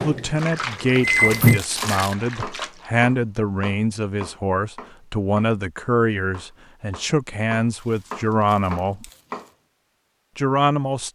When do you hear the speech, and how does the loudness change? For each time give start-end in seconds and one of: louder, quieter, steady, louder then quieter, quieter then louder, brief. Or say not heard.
0.0-9.1 steady
10.3-11.1 brief.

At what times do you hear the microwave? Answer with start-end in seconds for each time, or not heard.
0.0-1.6.